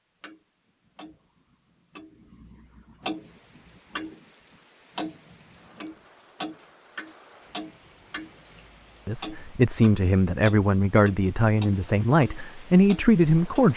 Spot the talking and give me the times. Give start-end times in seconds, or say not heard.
9.1-13.7.